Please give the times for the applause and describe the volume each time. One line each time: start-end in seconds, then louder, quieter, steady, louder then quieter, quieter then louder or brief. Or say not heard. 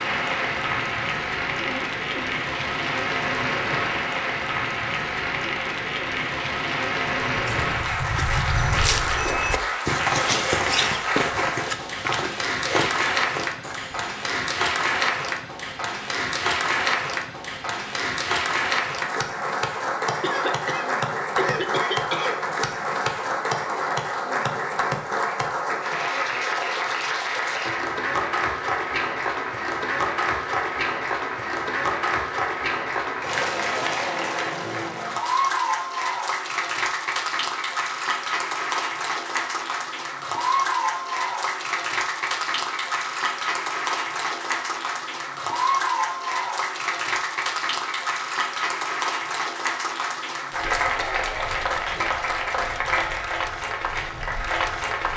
0.0-55.1 steady.